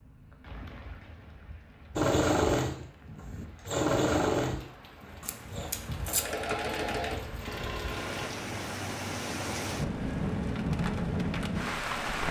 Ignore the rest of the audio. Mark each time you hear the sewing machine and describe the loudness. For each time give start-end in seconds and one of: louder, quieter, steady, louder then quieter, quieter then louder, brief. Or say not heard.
1.9-8.3 quieter then louder.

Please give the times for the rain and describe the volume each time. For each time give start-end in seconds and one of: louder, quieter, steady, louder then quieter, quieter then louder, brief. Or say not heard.
0.0-12.2 louder.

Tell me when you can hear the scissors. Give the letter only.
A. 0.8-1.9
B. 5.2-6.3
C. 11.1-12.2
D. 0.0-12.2
B.